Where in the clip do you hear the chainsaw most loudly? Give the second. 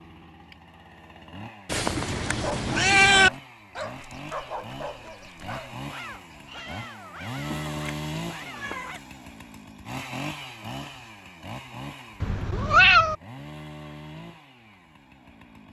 8 s.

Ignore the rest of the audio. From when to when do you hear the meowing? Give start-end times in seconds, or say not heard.
1.6-3.3, 7.5-9.0, 12.2-13.2.